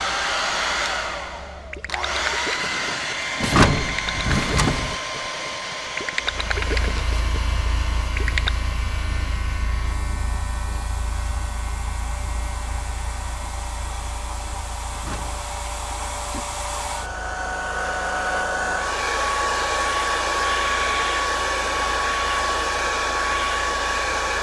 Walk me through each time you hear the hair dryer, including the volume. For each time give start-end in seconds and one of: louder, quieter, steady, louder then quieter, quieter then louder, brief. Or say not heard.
0.0-24.3 quieter then louder.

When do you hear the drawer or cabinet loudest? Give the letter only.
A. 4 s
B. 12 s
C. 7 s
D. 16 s
A.